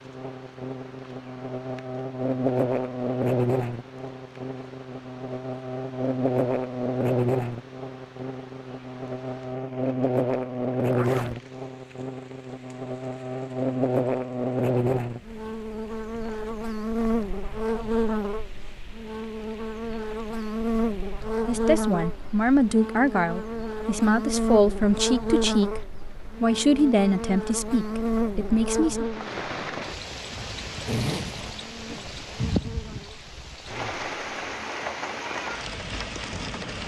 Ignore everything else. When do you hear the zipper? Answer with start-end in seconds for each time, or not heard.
10.9-11.4, 30.8-31.6.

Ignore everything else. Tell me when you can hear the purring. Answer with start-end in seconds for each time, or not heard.
not heard.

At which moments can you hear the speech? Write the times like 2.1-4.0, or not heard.
21.4-25.8, 26.4-29.1.